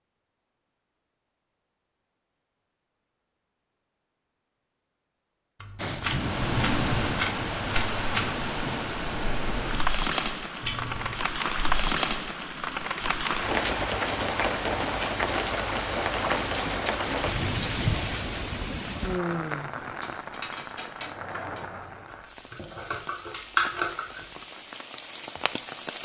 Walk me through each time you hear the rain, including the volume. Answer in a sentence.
The rain can be heard from 5.8 to 26.0 s, getting quieter.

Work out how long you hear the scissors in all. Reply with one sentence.
The scissors can be heard for 3 seconds in total.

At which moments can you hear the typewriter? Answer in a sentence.
The typewriter can be heard from 5.6 to 8.3 s and from 19.9 to 21.7 s.